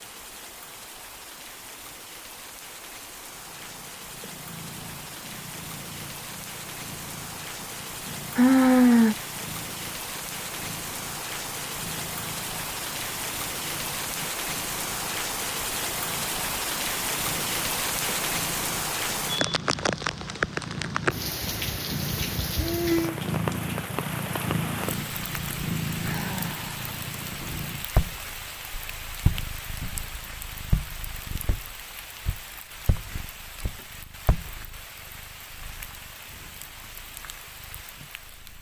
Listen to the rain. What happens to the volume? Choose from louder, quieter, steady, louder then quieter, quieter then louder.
louder then quieter.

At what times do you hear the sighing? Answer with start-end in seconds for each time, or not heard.
8.3-9.2, 22.6-23.2, 26.0-26.8.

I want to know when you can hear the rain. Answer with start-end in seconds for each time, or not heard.
0.0-38.5.